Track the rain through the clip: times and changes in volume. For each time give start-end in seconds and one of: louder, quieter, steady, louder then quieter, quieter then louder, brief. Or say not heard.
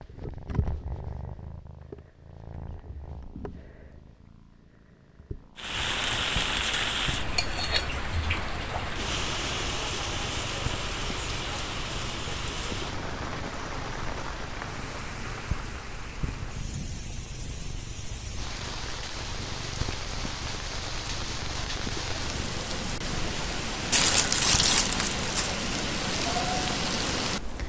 5.5-27.6 quieter then louder.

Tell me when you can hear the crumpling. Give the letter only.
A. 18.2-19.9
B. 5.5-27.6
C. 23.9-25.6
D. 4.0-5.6
C.